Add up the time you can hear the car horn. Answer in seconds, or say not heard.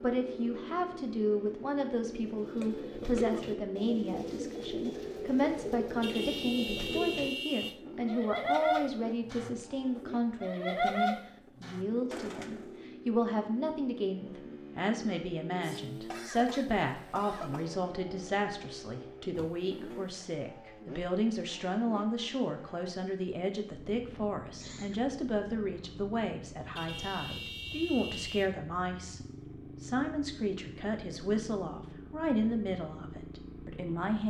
4 s.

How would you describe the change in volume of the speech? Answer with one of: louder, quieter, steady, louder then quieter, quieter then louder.
steady.